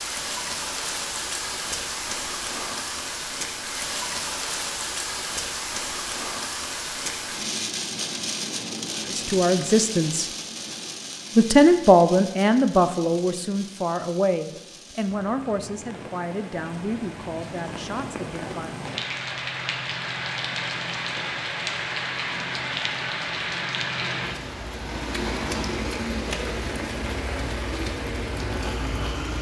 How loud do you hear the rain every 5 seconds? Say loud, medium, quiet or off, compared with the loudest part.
loud, loud, medium, medium, loud, loud.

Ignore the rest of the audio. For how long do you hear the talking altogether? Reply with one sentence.
You can hear the talking for 9 seconds altogether.